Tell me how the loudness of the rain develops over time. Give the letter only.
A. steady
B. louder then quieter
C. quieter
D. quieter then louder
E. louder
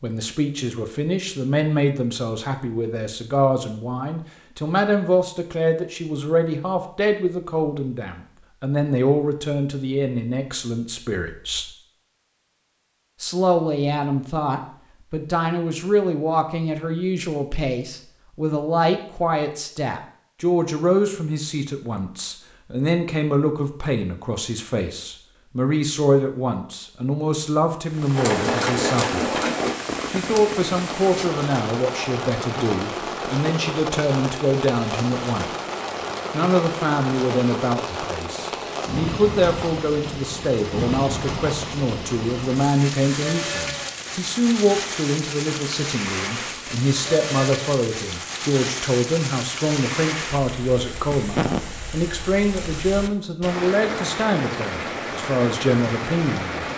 A.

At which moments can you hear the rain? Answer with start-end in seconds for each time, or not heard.
27.9-56.7.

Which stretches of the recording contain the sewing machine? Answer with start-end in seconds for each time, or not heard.
28.1-29.8.